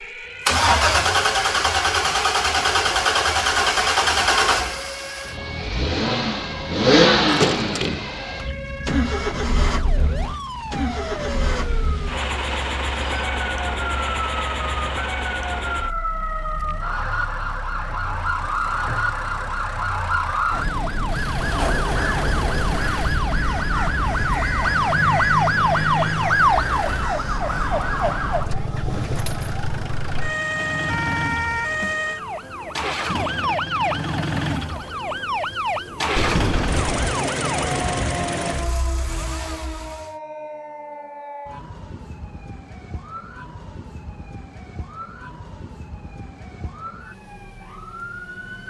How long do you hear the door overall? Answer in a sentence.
You can hear the door for 3 seconds altogether.